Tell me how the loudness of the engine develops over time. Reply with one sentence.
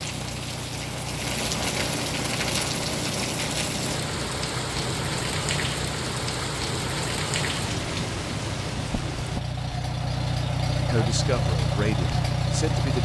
The volume of the engine goes up.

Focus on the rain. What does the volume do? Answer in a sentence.
The loudness of the rain stays about the same.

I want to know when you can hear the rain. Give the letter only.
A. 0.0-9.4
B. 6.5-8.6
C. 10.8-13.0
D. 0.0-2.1
A.